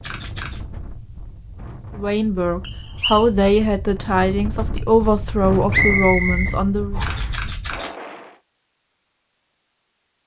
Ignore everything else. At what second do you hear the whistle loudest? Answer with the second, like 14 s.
6 s.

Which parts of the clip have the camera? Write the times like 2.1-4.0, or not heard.
0.0-0.6, 7.0-7.9.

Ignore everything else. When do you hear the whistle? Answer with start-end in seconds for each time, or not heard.
2.6-3.2, 5.7-7.3.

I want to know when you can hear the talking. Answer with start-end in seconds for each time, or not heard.
1.9-7.0.